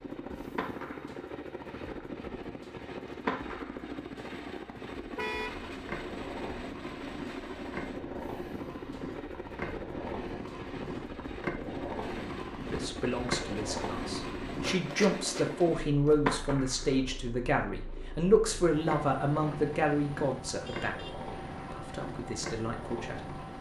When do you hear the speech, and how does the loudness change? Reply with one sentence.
The speech can be heard from 12.7 to 20.9 s, getting louder; and briefly from 21.7 to 23.4 s.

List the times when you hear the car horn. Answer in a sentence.
You can hear the car horn from 5.2 to 5.7 s and from 20.6 to 21.9 s.